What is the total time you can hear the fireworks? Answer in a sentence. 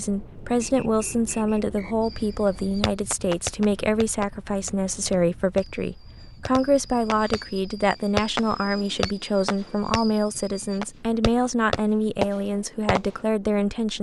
The fireworks can be heard for 11 seconds in total.